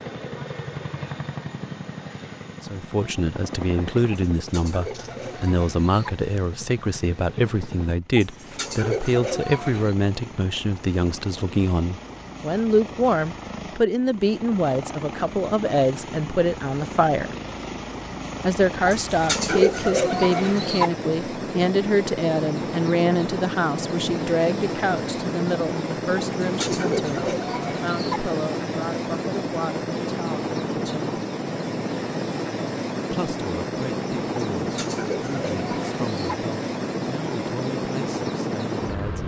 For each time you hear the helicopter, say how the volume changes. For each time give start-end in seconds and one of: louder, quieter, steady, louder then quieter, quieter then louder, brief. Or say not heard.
0.0-39.2 louder.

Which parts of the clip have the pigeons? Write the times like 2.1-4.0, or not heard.
4.3-6.1, 8.2-9.9, 18.9-20.9, 26.4-28.2, 34.6-36.4.